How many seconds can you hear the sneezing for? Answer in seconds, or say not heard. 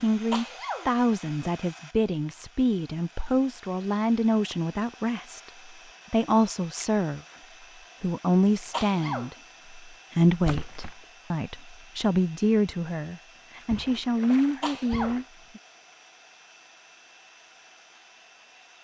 2 s.